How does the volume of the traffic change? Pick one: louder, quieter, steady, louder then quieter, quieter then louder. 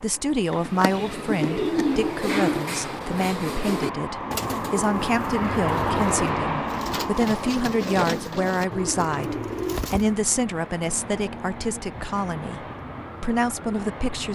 louder then quieter.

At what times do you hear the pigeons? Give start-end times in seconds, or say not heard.
0.4-10.2.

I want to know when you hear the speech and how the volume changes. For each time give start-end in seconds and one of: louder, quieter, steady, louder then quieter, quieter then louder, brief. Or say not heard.
0.0-14.3 steady.